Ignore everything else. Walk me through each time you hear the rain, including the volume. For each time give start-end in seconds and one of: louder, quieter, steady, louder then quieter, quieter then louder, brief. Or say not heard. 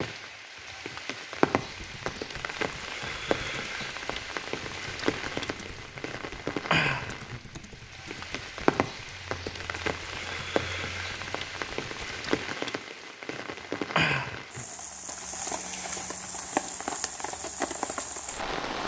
0.0-18.8 steady.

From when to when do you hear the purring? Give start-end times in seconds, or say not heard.
not heard.